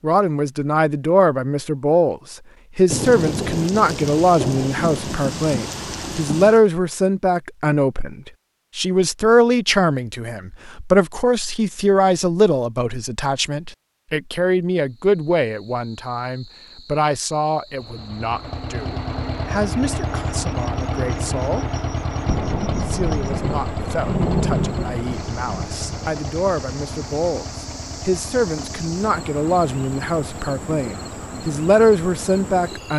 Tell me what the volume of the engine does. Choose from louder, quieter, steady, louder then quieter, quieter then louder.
quieter.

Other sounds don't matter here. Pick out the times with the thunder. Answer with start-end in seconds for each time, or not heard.
2.9-6.6, 22.2-26.2.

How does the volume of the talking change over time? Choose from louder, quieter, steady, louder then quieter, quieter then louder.
quieter then louder.